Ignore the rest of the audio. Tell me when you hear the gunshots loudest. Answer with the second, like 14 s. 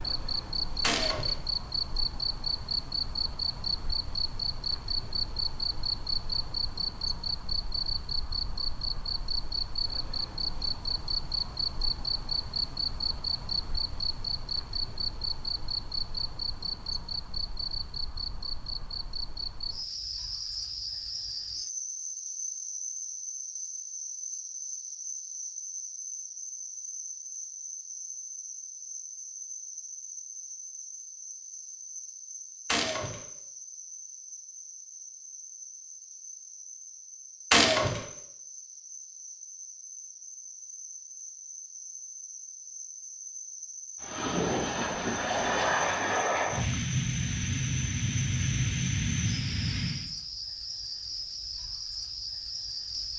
38 s.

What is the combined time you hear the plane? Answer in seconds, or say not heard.
6 s.